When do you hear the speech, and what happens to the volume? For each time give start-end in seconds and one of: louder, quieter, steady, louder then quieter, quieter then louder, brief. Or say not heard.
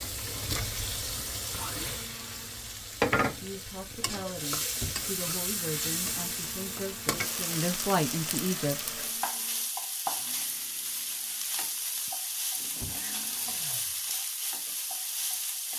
3.2-8.9 louder.